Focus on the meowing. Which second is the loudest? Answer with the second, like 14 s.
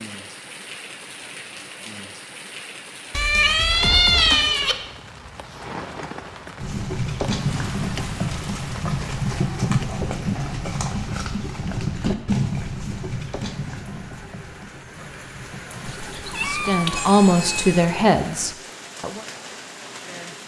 4 s.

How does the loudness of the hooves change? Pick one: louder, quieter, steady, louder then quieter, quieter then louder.
quieter.